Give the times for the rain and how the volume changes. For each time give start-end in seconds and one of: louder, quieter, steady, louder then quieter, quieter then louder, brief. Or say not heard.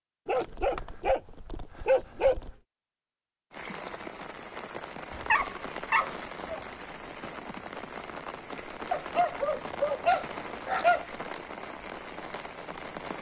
3.5-13.1 steady.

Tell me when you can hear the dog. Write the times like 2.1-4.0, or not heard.
0.2-2.5, 5.1-6.6, 8.9-11.1.